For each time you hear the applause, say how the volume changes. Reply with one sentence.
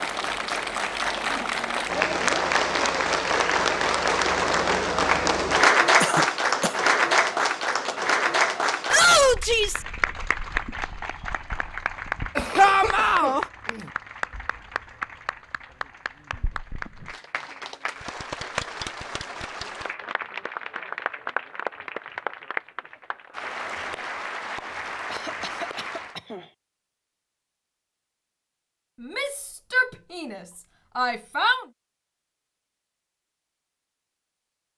The applause can be heard from 0.0 to 26.1 s, getting quieter.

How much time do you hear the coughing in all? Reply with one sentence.
The coughing can be heard for 4 seconds in total.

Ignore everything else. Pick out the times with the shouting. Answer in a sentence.
You can hear the shouting from 8.9 to 9.8 s, from 12.6 to 13.4 s and from 29.0 to 31.6 s.